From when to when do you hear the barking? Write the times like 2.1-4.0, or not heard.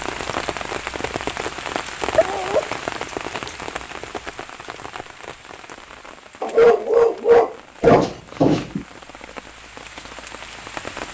2.1-2.6, 6.4-8.1.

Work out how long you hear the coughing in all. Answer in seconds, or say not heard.
2 s.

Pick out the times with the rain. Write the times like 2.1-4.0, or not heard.
0.0-11.1.